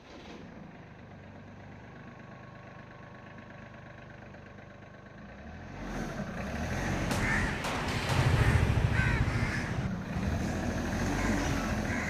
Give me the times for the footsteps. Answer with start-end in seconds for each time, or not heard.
not heard.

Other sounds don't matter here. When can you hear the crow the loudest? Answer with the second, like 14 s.
8 s.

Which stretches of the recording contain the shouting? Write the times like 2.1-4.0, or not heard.
not heard.